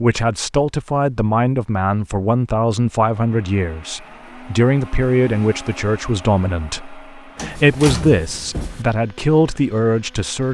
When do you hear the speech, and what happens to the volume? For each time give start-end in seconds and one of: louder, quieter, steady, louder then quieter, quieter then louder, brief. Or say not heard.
0.0-10.4 steady.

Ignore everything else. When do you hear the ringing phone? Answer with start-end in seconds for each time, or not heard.
not heard.